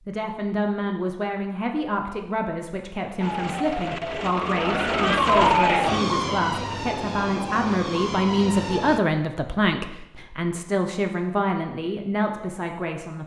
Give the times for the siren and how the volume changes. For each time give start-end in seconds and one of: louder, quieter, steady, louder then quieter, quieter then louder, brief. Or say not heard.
3.2-9.0 louder then quieter.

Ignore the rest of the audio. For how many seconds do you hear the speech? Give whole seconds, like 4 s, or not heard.
13 s.